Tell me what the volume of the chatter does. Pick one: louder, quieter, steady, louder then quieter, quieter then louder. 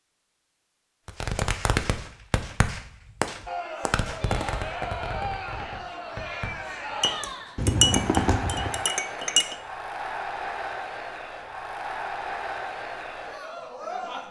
steady.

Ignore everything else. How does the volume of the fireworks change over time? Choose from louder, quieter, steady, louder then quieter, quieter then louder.
quieter then louder.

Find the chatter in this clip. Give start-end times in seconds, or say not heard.
3.5-14.2.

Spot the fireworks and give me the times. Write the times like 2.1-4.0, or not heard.
1.1-8.8.